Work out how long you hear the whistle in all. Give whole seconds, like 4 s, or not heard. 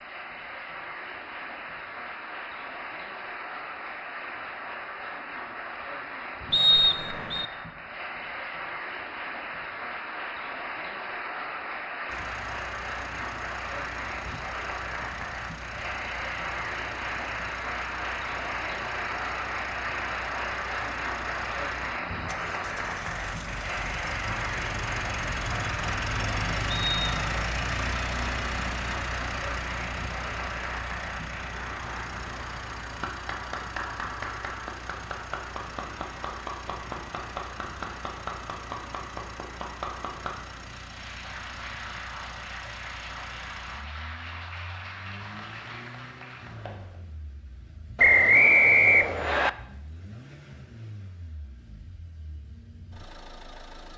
3 s.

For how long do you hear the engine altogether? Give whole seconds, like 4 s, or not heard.
42 s.